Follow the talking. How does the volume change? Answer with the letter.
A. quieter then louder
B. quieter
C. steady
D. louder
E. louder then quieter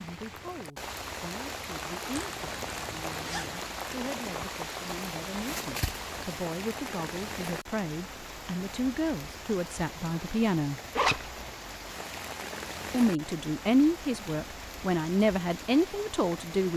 D.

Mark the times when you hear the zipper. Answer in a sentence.
The zipper can be heard from 2.1 to 3.6 s and from 10.9 to 11.4 s.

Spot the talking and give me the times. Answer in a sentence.
The talking can be heard from 0.0 to 10.8 s and from 12.9 to 16.7 s.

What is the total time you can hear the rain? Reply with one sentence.
You can hear the rain for 17 seconds altogether.